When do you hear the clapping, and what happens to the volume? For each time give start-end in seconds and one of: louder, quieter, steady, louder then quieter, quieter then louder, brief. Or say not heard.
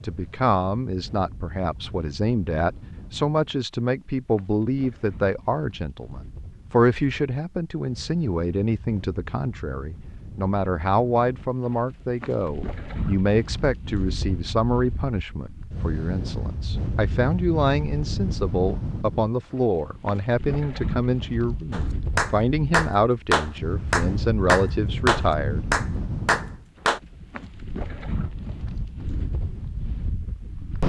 21.7-27.0 steady.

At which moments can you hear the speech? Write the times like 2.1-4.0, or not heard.
0.0-25.6.